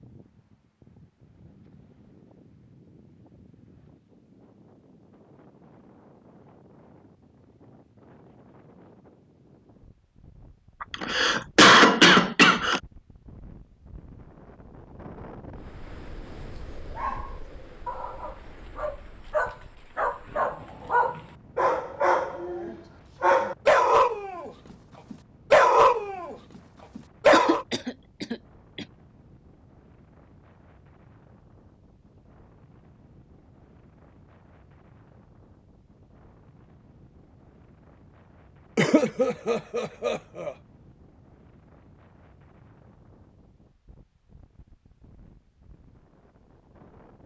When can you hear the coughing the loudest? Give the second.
12 s.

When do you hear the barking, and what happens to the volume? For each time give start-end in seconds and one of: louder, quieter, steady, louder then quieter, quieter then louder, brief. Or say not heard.
16.6-24.5 louder
25.1-26.4 brief
26.9-27.6 brief.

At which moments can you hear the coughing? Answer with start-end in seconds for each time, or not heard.
10.8-12.8, 27.3-28.9, 38.8-40.5.